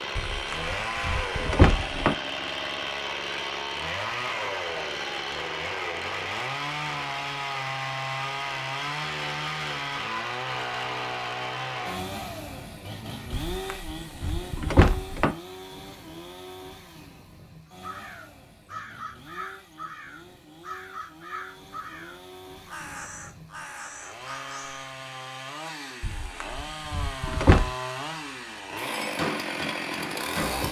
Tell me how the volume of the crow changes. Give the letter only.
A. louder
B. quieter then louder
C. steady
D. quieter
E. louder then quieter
C.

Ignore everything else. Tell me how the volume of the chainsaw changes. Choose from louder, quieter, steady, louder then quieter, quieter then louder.
quieter then louder.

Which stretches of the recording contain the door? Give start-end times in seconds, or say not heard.
0.1-2.1, 13.5-15.3, 26.0-27.7.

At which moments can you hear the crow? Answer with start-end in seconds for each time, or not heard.
17.7-24.9.